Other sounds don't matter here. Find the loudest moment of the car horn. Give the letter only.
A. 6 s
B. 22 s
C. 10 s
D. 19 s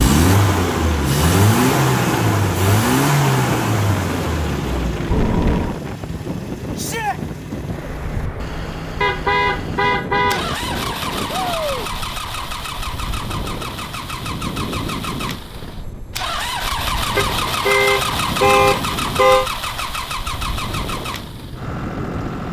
D.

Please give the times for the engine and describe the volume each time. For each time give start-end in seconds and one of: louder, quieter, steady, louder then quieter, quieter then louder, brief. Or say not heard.
0.0-22.4 quieter then louder.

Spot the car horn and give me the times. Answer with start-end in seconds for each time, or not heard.
5.1-5.8, 9.0-10.4, 17.1-19.5.